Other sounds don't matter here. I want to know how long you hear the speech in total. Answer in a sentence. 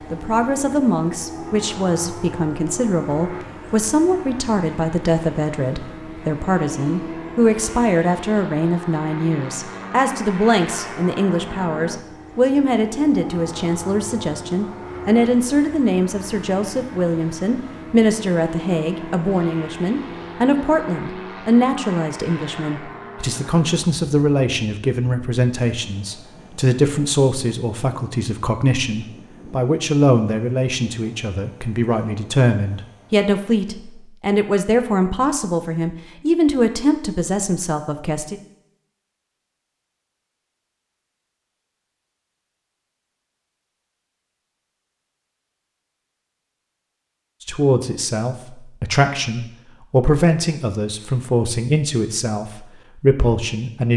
The speech can be heard for 45 seconds in total.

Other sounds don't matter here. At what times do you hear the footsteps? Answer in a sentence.
The footsteps can't be heard in this clip.